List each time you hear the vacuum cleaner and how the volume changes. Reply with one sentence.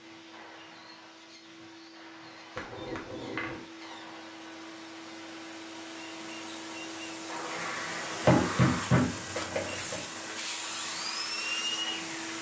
The vacuum cleaner can be heard from 0.0 to 12.3 s, getting louder.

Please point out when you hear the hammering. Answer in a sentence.
You can hear the hammering from 2.5 to 3.6 s and from 8.2 to 10.0 s.